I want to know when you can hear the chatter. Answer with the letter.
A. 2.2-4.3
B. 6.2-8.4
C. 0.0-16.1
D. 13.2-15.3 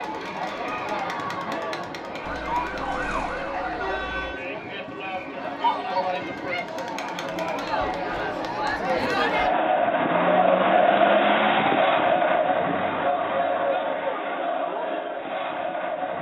C.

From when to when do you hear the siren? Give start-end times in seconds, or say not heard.
2.2-4.3.